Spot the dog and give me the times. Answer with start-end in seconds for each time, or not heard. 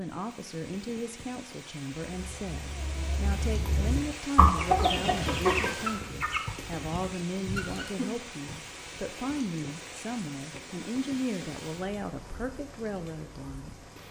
not heard.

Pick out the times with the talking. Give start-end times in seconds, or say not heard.
0.0-13.8.